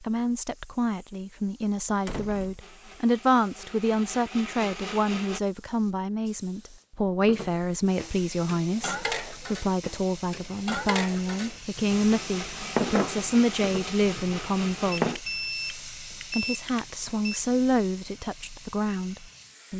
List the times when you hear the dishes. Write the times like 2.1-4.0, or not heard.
7.2-15.2.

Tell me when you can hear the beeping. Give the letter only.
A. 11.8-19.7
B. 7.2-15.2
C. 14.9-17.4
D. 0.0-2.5
C.